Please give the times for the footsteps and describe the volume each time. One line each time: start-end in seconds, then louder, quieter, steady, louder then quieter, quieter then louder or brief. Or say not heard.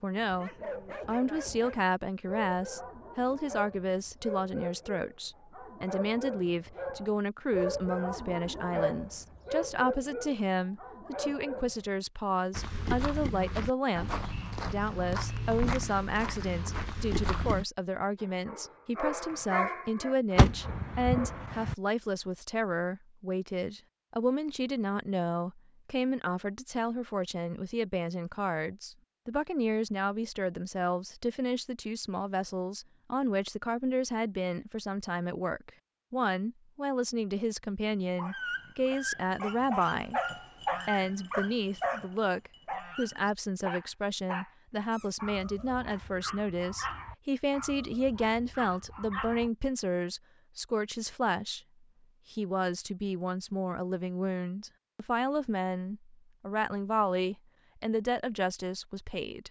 12.5-17.6 steady.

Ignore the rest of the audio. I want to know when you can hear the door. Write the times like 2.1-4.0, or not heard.
20.4-21.8.